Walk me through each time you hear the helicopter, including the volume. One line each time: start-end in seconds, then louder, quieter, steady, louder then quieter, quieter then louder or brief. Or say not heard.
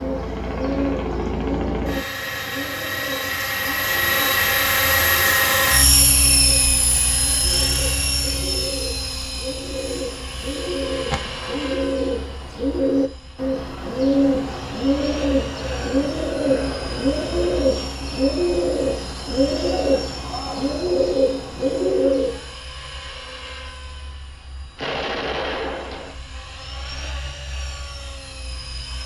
0.0-29.0 quieter.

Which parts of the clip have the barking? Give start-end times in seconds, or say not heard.
not heard.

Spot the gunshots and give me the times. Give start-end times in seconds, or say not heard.
11.1-11.8, 24.8-26.1.